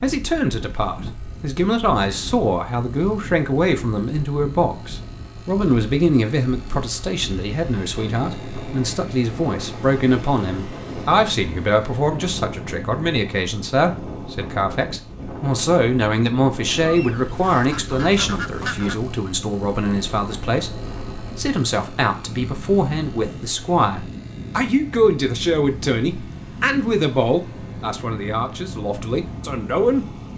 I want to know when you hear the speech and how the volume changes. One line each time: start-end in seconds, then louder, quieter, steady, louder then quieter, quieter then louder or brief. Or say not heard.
0.0-30.1 steady.